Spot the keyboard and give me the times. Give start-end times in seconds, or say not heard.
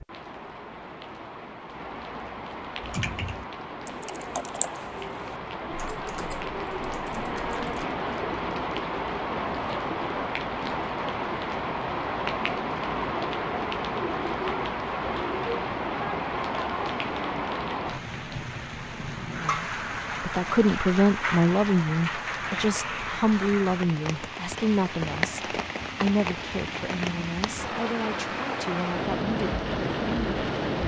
2.8-7.8.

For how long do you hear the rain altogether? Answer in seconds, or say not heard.
31 s.